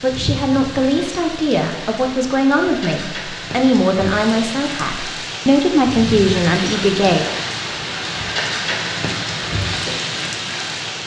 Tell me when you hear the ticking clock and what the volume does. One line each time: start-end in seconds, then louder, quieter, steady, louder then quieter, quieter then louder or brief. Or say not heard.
not heard.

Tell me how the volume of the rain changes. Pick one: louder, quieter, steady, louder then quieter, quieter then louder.
louder.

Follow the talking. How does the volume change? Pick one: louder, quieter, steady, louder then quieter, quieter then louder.
steady.